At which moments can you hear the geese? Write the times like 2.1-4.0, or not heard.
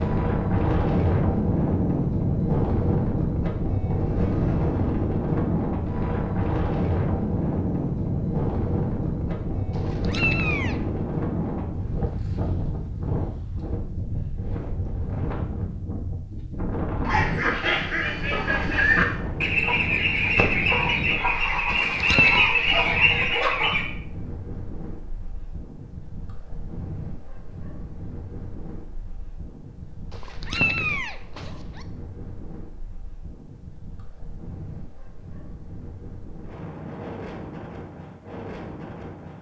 17.0-23.9.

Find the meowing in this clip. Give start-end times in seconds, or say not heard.
9.7-10.8, 21.9-22.6, 30.1-31.9.